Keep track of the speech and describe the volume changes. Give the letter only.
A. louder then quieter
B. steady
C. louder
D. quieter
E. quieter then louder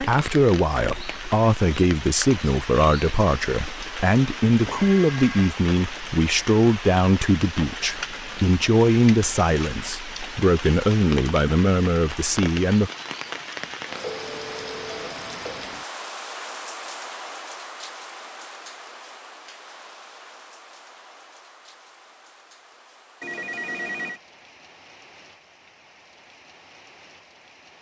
B.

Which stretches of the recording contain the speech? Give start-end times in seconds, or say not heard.
0.0-12.9.